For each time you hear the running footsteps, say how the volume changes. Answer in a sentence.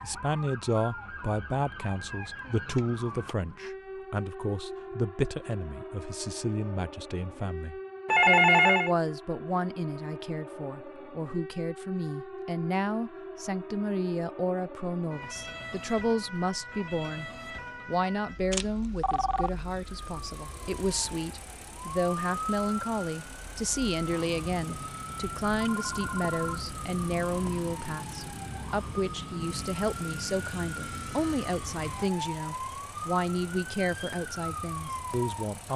You can't hear the running footsteps here.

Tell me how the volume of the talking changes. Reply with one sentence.
The volume of the talking stays about the same.